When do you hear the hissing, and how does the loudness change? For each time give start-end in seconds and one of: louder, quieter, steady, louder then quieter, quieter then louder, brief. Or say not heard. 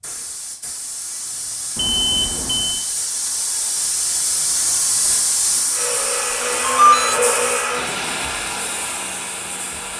0.0-9.9 louder then quieter.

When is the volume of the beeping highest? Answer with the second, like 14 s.
7 s.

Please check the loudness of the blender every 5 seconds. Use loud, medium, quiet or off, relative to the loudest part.
off, loud.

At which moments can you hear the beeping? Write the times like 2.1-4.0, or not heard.
1.8-2.9, 6.7-7.2.